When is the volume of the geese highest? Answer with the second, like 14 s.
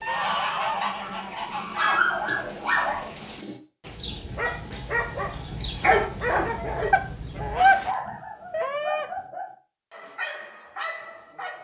8 s.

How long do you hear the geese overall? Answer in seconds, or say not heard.
4 s.